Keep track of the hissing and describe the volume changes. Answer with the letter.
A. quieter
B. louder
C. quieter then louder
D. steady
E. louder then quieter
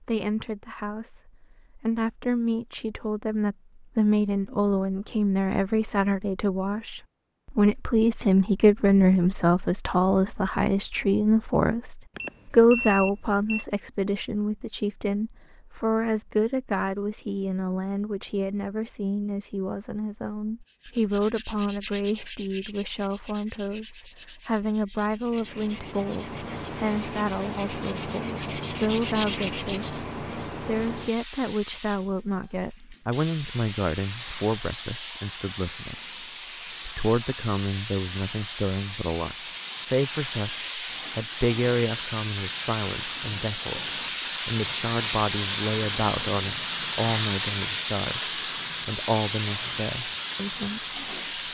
B.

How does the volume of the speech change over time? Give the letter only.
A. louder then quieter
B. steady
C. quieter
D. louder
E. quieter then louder
C.